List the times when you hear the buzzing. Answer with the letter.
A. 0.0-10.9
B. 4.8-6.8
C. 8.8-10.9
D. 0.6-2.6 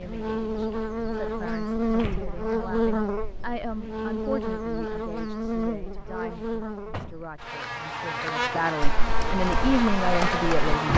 A.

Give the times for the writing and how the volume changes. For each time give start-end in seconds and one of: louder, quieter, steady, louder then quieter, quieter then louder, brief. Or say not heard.
not heard.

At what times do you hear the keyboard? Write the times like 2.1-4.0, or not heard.
8.8-10.9.